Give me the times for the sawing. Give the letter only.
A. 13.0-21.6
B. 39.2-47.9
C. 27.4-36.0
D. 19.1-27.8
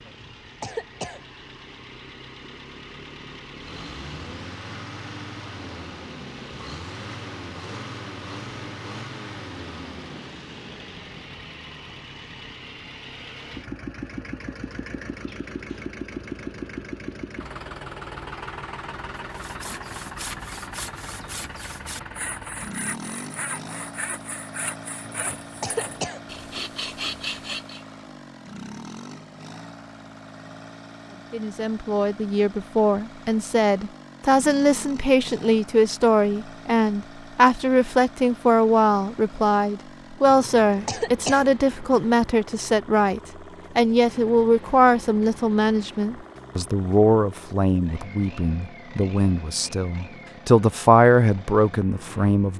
D.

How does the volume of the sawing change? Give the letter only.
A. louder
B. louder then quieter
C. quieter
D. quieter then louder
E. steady
A.